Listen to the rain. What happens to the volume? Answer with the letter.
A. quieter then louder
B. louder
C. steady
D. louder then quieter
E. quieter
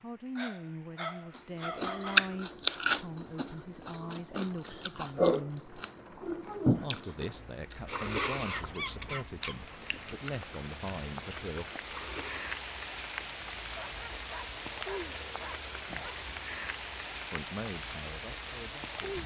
B.